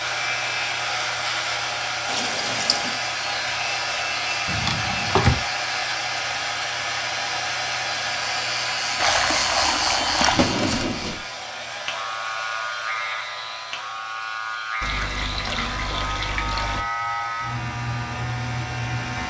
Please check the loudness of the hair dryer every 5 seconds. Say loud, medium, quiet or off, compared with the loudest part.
loud, loud, medium, medium.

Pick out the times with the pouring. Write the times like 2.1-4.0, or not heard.
2.0-3.0, 9.0-10.5, 14.8-16.9.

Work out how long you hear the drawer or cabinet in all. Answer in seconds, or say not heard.
2 s.